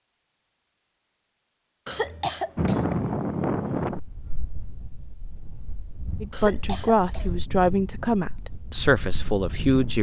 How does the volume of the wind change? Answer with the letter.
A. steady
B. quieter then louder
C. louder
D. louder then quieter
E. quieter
B.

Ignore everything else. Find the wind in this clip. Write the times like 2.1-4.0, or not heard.
2.5-9.9.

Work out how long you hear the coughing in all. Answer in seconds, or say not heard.
2 s.